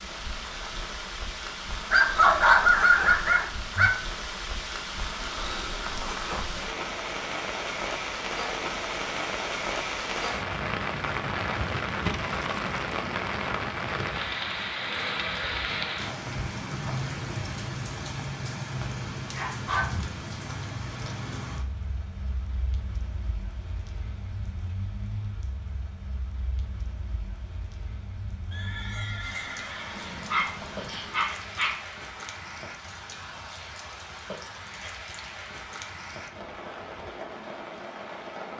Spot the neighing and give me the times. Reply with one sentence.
The neighing can be heard from 14.8 to 16.3 s and from 28.5 to 31.1 s.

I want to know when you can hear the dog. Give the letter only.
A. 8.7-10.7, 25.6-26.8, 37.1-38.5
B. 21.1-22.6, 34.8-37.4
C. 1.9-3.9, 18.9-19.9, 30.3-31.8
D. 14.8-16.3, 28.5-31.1
C.